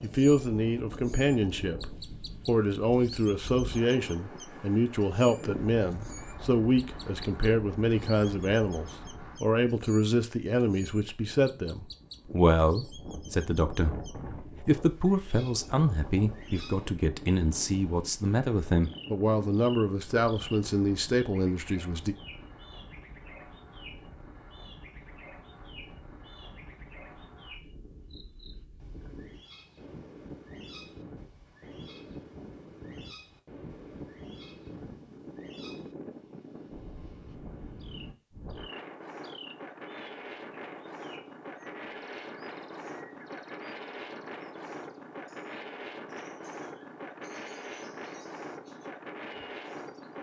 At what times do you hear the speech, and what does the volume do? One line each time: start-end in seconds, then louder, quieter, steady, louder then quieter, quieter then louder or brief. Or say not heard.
0.0-22.1 steady.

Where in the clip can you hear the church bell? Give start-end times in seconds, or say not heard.
not heard.